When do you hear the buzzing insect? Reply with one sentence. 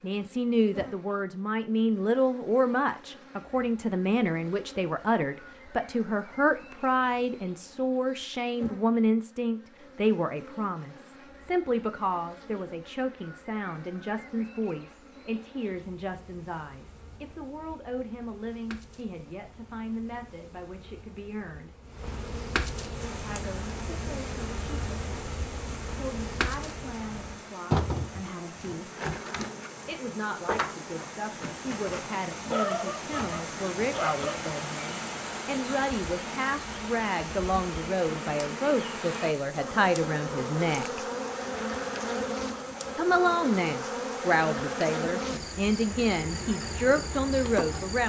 The buzzing insect can be heard from 0.0 to 48.0 s.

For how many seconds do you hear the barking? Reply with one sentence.
You can hear the barking for 2 seconds altogether.